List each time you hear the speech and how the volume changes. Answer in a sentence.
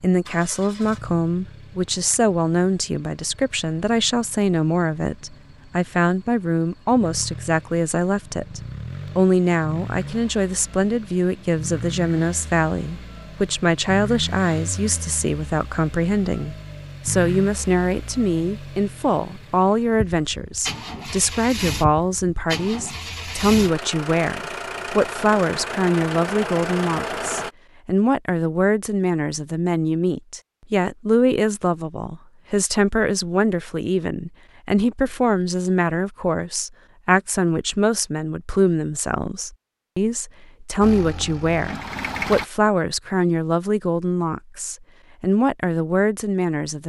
The speech can be heard from 0.0 to 46.8 s, at a steady volume.